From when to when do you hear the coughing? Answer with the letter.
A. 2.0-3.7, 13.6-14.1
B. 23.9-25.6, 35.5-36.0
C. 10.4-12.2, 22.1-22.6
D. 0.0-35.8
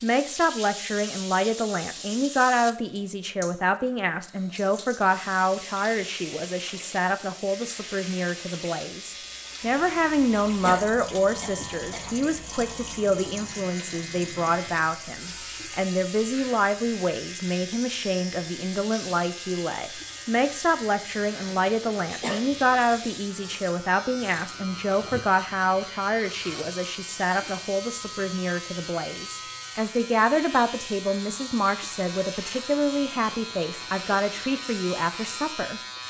C.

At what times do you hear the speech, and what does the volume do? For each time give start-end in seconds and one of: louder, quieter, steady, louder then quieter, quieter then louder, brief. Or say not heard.
0.0-35.8 steady.